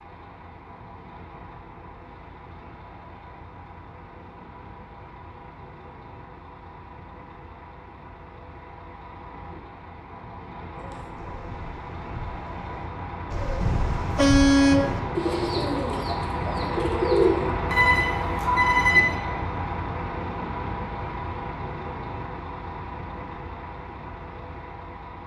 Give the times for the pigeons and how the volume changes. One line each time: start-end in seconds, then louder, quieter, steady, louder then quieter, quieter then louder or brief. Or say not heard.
10.7-17.5 louder.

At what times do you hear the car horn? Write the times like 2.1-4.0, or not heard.
13.6-14.9.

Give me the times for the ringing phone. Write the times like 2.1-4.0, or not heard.
17.7-19.1.